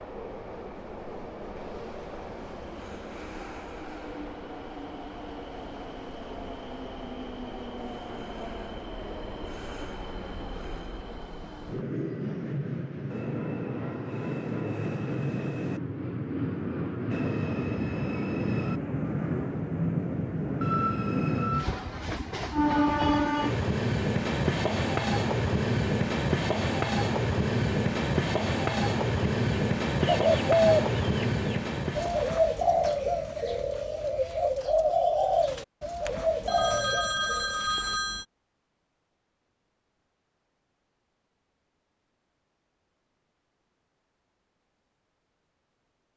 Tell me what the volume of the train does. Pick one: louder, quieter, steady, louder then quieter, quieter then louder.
louder.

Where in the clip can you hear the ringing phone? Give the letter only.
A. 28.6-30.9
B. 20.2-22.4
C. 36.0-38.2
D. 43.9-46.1
C.